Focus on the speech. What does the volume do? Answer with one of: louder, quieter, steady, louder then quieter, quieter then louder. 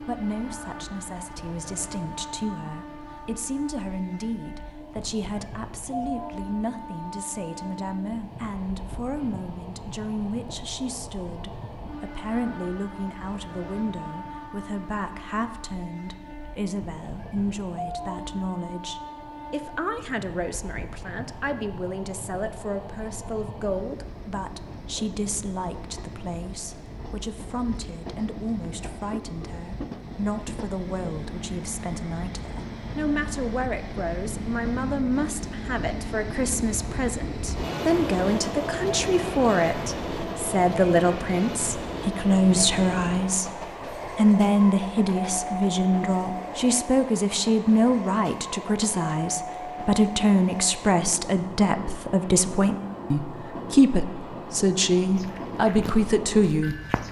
louder.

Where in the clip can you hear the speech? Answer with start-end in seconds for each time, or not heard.
0.1-56.8.